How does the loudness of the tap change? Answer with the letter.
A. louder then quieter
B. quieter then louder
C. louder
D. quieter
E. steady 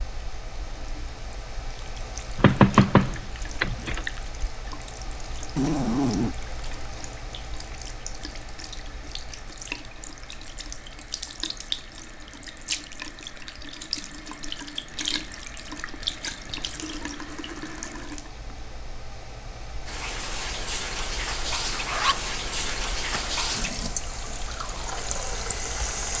C.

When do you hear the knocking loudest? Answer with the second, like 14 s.
3 s.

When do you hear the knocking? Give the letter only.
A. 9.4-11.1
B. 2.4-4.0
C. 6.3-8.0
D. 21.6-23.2
B.